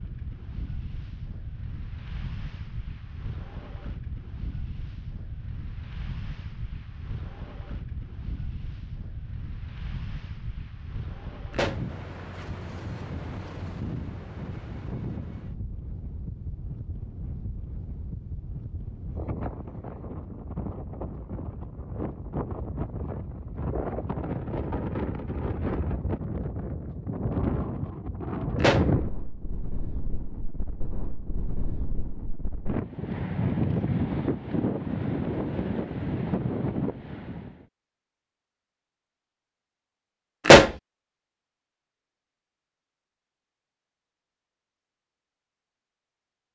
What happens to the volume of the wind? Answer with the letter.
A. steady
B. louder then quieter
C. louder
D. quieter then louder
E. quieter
C.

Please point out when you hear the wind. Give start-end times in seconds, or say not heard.
0.0-37.6.